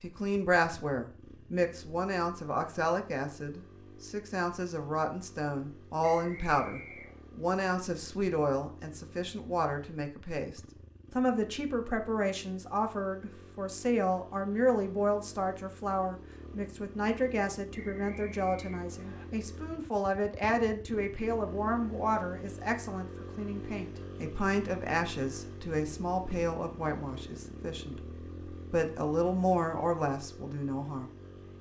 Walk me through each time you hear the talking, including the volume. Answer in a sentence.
The talking can be heard from 0.0 to 31.1 s, at a steady volume.